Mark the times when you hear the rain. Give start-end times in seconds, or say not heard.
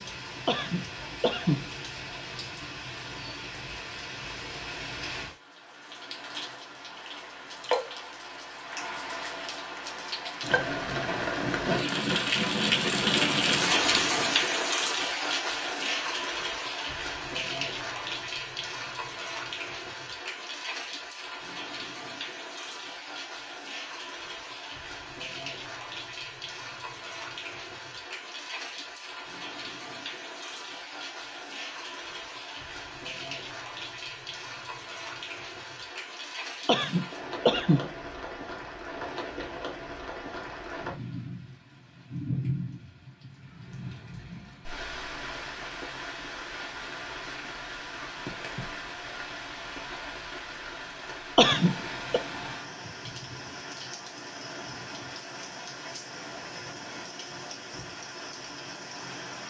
0.0-59.4.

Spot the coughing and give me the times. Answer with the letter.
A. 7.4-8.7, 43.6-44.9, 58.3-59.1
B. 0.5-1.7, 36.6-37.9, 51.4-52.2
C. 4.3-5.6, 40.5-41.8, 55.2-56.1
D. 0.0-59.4
B.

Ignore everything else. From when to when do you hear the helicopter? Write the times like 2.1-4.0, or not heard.
not heard.